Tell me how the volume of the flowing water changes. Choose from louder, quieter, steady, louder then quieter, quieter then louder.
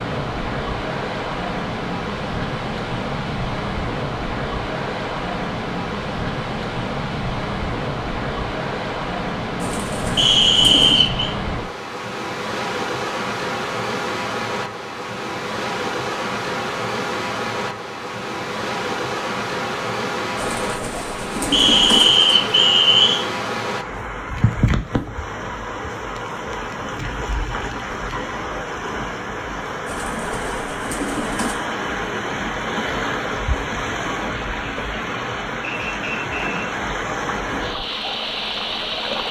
steady.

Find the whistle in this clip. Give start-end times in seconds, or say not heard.
10.2-11.3, 21.5-23.2, 35.6-36.6.